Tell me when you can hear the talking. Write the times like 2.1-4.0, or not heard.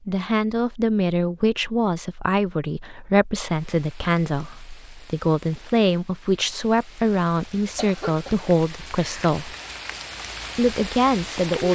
0.1-9.6, 10.6-11.7.